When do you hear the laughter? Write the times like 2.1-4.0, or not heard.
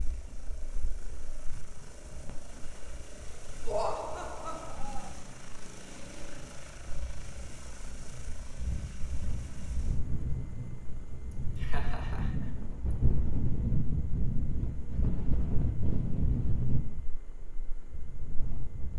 3.6-5.1, 11.3-12.5.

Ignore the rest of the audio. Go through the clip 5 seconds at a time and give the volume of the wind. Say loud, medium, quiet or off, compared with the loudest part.
quiet, medium, loud, loud.